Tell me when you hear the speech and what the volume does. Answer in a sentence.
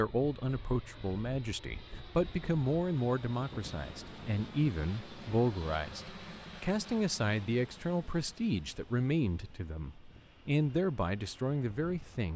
The speech can be heard from 0.0 to 12.3 s, at a steady volume.